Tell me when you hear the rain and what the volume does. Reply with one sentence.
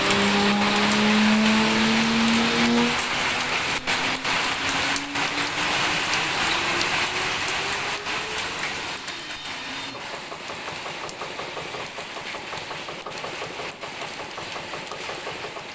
The rain can be heard from 0.0 to 15.7 s, getting quieter.